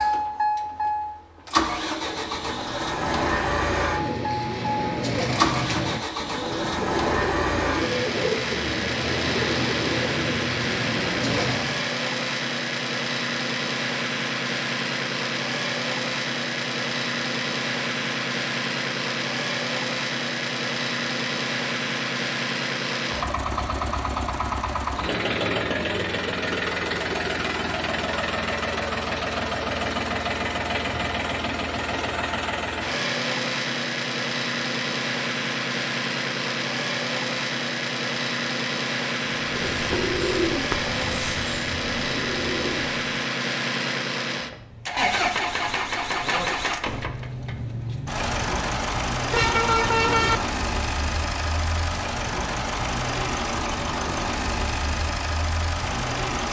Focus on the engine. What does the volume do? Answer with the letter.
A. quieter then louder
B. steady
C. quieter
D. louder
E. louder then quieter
B.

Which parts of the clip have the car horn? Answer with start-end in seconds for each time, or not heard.
49.3-50.4.